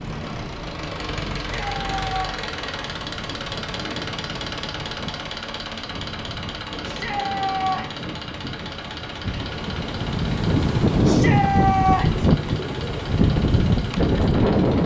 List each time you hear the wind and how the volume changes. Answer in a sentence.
You can hear the wind from 0.0 to 14.8 s, getting louder.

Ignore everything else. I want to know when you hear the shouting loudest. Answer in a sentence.
The loudest moment of the shouting is at 12 seconds.